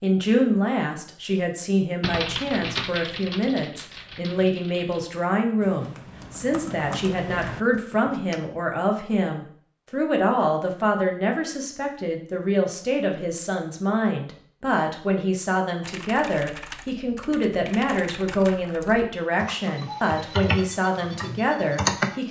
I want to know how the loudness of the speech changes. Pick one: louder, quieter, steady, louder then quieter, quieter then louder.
steady.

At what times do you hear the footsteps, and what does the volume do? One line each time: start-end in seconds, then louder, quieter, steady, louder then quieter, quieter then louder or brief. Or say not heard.
not heard.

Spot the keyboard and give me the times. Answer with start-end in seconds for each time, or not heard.
2.0-8.4, 15.8-22.2.